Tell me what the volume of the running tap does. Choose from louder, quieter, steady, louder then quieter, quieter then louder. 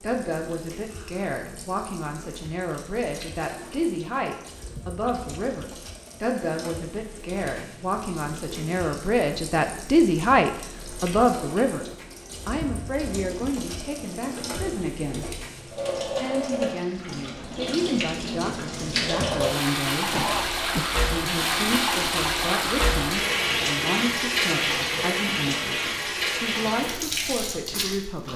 louder.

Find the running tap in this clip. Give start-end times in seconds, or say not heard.
0.0-28.3.